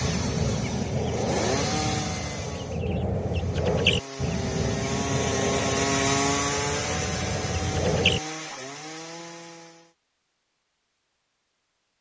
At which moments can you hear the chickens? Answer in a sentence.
The chickens can be heard from 0.0 to 8.6 s.